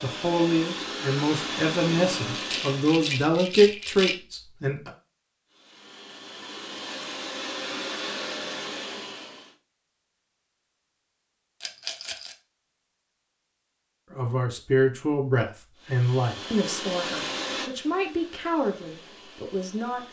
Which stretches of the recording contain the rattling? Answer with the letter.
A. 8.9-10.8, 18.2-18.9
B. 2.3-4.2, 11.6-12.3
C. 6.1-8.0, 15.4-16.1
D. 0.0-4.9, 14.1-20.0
B.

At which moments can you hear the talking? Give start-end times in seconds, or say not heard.
0.0-4.9, 14.1-20.0.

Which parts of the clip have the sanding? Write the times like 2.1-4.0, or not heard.
not heard.